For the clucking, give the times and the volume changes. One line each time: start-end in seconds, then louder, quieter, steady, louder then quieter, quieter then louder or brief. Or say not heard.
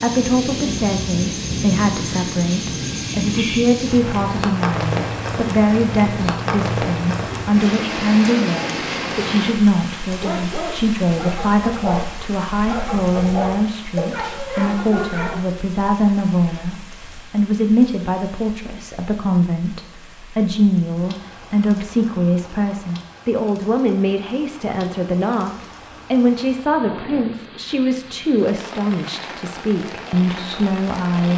not heard.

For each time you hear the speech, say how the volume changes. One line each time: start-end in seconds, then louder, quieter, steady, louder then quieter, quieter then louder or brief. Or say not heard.
0.0-31.3 steady.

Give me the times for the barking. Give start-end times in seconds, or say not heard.
10.2-15.4.